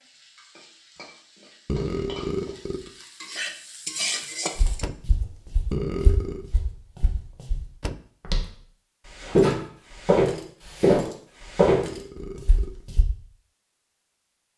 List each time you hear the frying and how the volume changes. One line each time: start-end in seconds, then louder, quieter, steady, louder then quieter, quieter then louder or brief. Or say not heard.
0.0-4.8 louder.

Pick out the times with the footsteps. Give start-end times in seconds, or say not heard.
4.5-13.1.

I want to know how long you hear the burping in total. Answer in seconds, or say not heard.
3 s.